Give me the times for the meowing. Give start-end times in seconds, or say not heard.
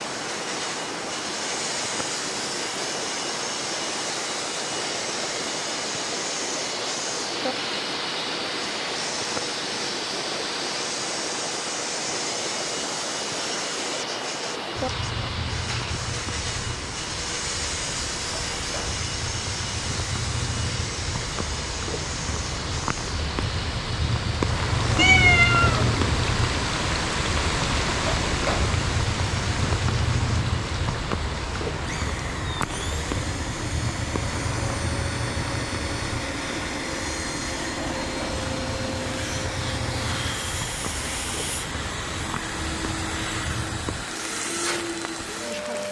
24.9-26.2.